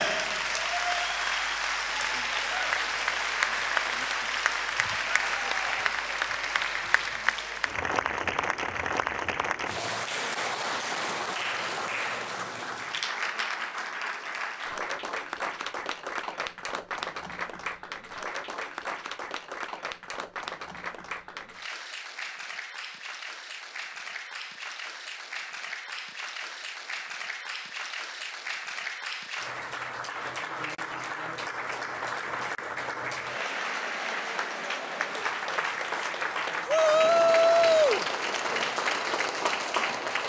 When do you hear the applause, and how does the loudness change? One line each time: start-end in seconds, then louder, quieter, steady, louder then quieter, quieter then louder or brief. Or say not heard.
0.0-40.2 quieter then louder.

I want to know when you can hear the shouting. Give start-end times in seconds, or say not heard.
36.6-38.0.